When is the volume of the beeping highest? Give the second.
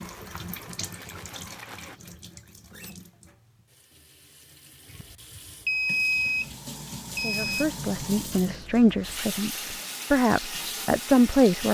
6 s.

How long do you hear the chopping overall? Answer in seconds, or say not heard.
not heard.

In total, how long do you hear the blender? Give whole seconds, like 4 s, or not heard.
2 s.